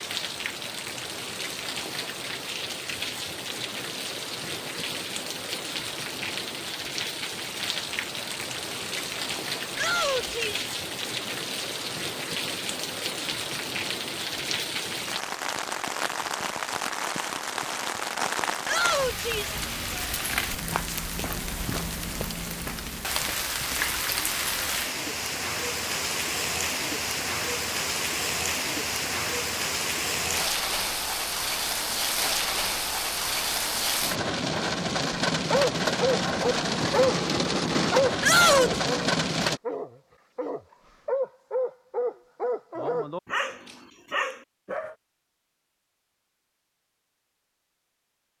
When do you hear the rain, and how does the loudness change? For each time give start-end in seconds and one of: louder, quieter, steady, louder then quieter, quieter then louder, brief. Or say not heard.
0.0-39.6 louder.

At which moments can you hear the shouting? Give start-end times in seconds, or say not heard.
9.8-10.6, 18.6-19.6, 38.2-38.8.